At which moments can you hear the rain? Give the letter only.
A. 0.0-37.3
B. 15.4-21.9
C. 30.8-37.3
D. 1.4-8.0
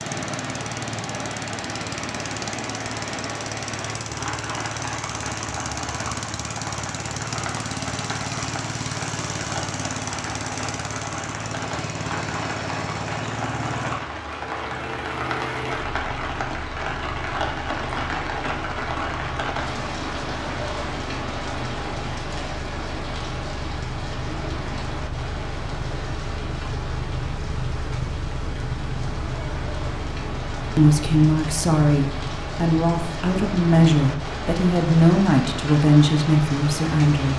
A.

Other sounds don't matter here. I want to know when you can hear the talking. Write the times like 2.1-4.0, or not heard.
30.8-37.3.